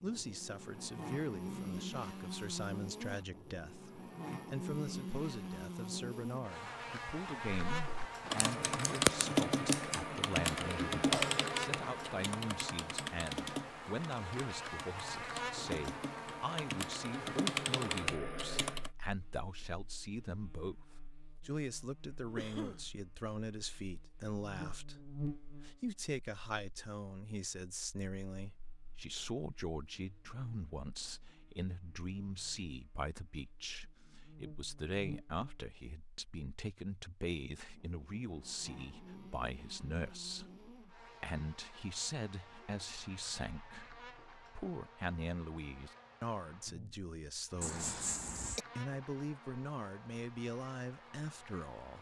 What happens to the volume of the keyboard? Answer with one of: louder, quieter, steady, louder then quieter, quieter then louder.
quieter then louder.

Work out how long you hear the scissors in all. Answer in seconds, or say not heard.
2 s.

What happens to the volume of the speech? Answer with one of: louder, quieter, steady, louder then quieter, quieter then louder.
steady.